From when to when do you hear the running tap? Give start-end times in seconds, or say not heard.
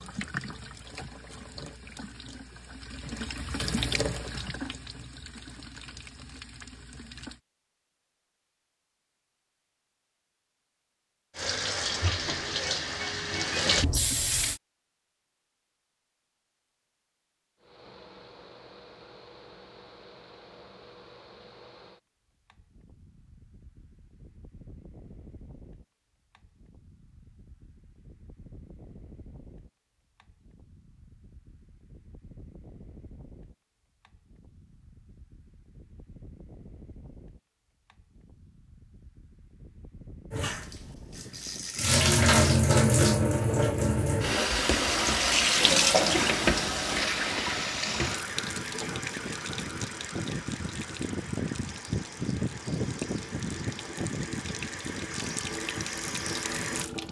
0.0-7.4, 11.3-14.6, 40.3-57.0.